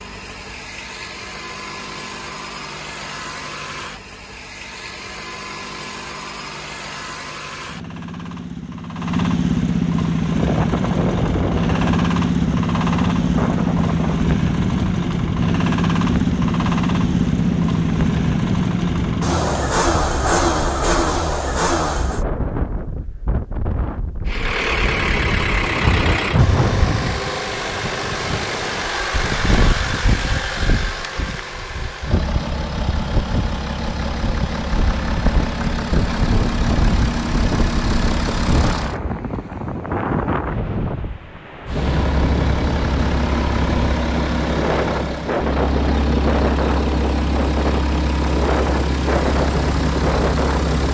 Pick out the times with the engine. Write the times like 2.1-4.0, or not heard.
0.0-22.2, 24.2-39.0, 41.6-50.8.